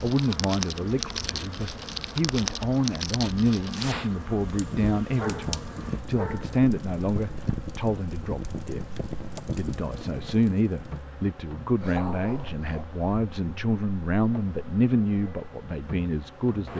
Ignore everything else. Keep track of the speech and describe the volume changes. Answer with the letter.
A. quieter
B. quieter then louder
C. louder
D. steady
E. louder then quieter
D.